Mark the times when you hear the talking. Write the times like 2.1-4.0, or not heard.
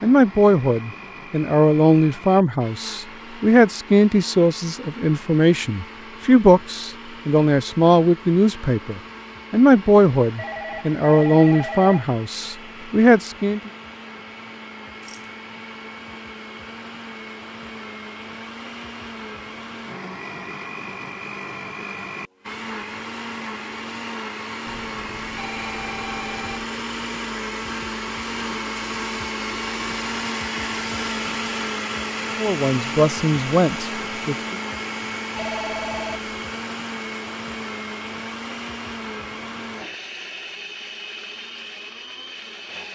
0.0-13.7, 32.4-34.5.